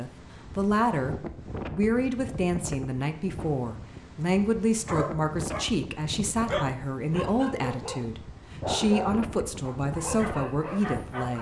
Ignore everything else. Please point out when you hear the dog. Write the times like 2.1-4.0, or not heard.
4.8-11.3.